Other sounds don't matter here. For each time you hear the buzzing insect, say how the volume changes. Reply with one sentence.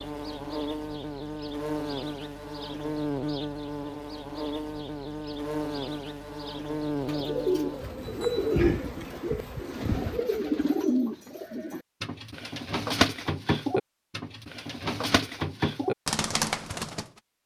The buzzing insect can be heard from 0.0 to 10.2 s, at a steady volume.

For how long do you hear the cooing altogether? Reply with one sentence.
The cooing can be heard for 10 seconds in total.